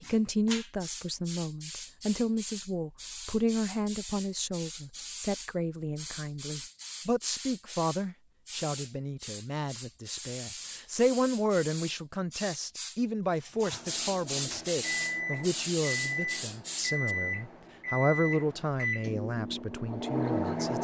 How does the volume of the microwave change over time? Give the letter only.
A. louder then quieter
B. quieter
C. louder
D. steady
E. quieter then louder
D.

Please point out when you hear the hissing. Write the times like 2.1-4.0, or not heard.
0.0-17.1.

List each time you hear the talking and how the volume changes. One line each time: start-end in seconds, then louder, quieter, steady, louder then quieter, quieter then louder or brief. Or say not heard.
0.0-20.7 steady.